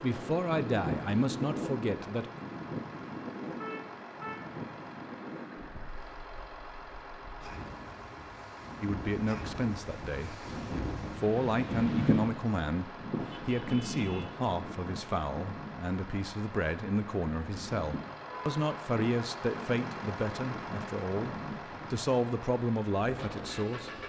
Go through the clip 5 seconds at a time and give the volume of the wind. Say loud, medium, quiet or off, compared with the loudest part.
loud, medium, loud, medium, medium.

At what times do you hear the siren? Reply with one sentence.
You can't hear the siren here.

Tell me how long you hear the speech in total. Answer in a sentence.
You can hear the speech for 17 seconds altogether.